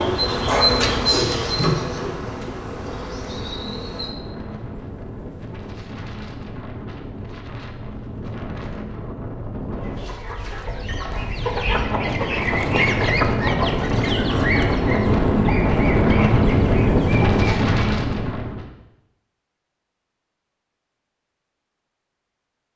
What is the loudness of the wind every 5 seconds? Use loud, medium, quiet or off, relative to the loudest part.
quiet, quiet, medium, loud, off.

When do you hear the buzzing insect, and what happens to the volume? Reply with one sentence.
You can hear the buzzing insect from 0.0 to 4.1 s, getting quieter.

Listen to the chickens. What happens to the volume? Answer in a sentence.
The loudness of the chickens goes up, then down.